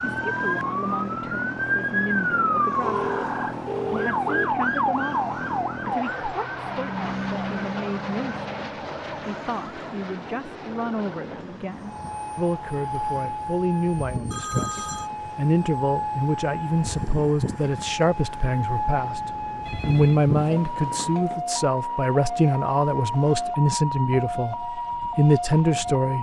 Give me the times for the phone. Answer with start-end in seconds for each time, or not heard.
2.8-4.5, 14.3-15.1, 19.6-21.4.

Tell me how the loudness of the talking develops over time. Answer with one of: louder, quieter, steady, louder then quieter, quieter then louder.
louder.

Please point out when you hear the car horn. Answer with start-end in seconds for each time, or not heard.
not heard.